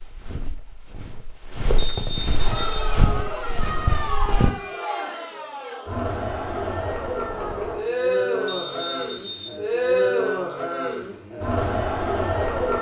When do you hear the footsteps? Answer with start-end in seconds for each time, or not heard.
0.0-4.5.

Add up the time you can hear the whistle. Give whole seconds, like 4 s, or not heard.
2 s.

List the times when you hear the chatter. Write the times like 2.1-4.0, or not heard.
2.4-12.7.